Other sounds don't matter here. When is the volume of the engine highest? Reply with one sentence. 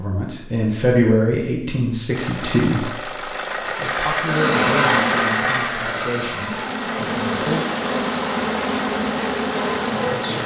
The loudest moment of the engine is at 5 seconds.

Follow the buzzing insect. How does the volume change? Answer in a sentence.
The loudness of the buzzing insect goes down, then up.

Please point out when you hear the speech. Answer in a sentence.
The speech can be heard from 0.0 to 7.7 s.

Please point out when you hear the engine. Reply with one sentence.
The engine can be heard from 2.1 to 10.4 s.